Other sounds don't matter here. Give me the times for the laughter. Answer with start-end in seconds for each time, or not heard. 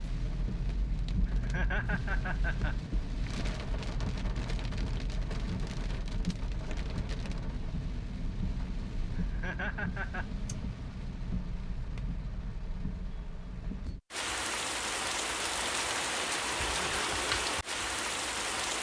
1.2-3.0, 9.2-10.2, 16.7-17.1.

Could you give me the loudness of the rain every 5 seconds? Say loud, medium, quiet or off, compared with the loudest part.
medium, medium, medium, loud.